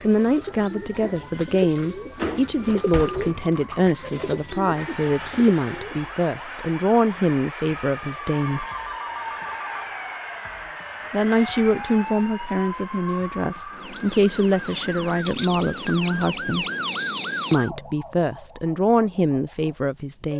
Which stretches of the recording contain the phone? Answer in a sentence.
You can hear the phone from 8.4 to 9.9 s.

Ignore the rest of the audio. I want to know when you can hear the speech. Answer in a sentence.
The speech can be heard from 0.0 to 8.7 s, from 11.1 to 16.6 s and from 17.5 to 20.3 s.